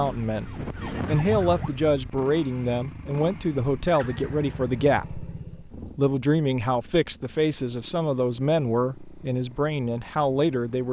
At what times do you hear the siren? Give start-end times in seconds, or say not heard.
0.2-1.8.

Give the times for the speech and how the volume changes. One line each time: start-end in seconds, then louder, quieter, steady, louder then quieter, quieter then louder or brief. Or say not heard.
0.0-10.8 steady.